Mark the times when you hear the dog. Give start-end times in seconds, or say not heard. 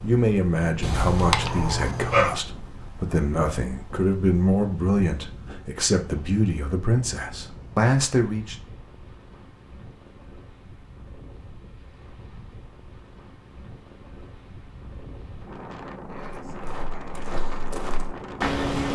0.8-2.4.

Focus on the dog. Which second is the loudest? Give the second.
2 s.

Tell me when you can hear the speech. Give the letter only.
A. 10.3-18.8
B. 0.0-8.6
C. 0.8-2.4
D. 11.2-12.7
B.